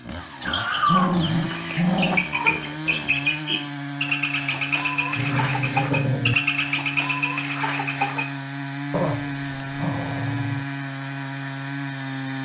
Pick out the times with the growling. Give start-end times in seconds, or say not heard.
0.8-2.2, 4.5-6.3, 8.9-10.7.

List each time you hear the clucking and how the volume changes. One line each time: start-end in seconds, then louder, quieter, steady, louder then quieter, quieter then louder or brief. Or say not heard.
0.4-8.2 steady.